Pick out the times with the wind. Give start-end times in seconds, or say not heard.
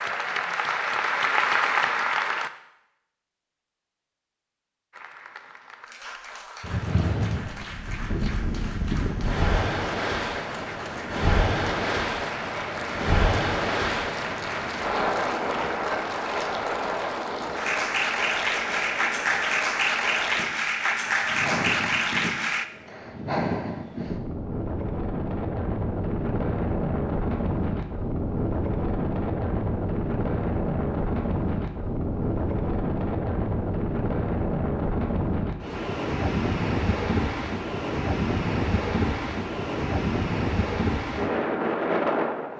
6.6-42.5.